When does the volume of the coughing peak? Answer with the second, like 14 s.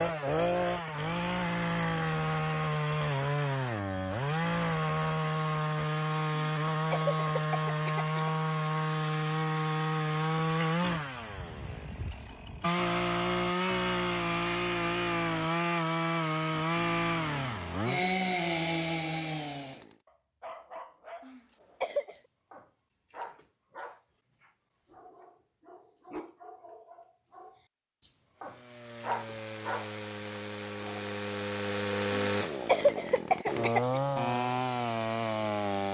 33 s.